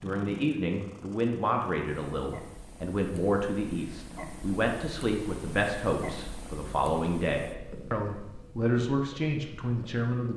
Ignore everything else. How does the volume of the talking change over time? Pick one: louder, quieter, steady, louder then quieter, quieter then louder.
steady.